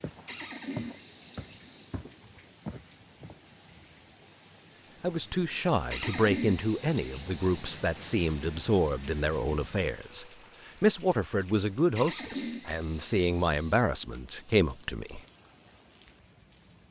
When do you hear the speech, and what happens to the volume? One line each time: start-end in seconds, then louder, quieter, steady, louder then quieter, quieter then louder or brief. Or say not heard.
5.0-15.2 steady.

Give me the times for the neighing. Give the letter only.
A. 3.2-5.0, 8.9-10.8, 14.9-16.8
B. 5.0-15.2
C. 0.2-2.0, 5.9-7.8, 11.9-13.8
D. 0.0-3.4
C.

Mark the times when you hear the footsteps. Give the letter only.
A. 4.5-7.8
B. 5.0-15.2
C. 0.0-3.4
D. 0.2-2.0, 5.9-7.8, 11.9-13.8
C.